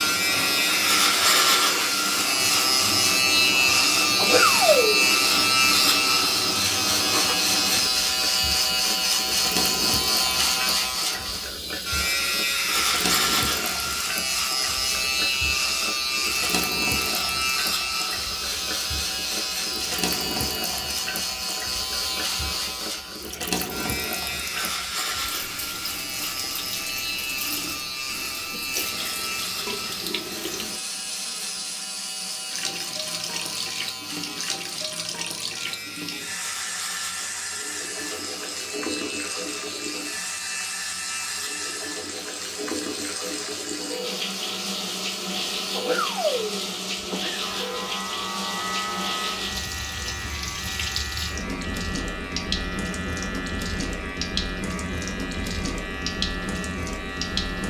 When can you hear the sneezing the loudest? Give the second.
5 s.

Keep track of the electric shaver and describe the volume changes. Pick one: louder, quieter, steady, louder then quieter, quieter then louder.
quieter.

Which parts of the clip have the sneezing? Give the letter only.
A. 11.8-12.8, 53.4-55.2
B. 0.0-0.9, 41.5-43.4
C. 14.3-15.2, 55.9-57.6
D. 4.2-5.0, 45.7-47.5
D.